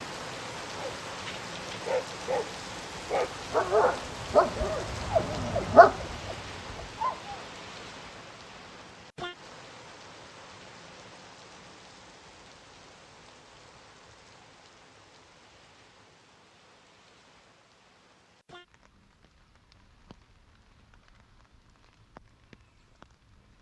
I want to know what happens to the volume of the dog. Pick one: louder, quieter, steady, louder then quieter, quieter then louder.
louder.